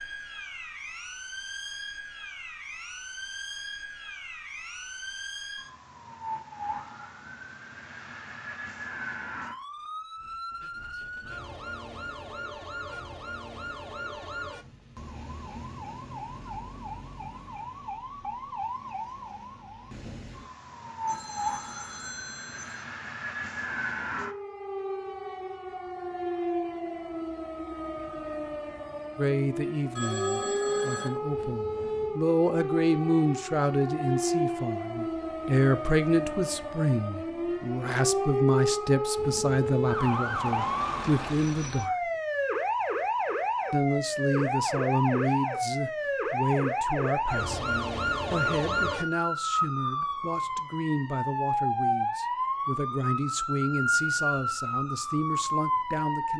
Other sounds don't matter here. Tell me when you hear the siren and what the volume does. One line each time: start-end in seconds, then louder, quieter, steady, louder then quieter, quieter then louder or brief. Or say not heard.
0.0-56.3 louder.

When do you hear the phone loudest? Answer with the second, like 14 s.
30 s.